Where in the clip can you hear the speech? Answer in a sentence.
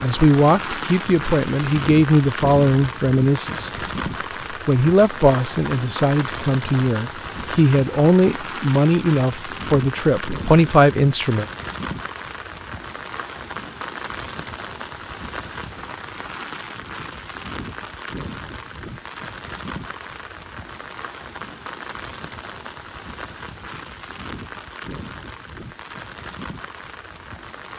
The speech can be heard from 0.0 to 3.7 s and from 4.5 to 11.4 s.